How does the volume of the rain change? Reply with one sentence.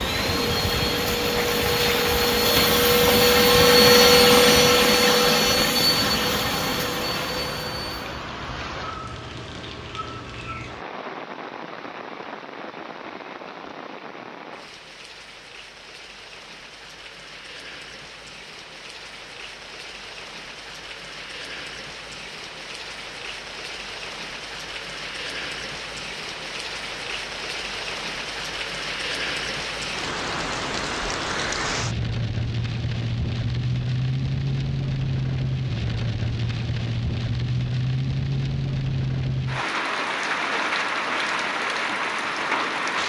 The loudness of the rain goes down, then up.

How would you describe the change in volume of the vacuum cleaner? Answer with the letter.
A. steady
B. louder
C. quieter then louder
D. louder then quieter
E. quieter
D.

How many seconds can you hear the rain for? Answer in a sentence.
You can hear the rain for 43 seconds altogether.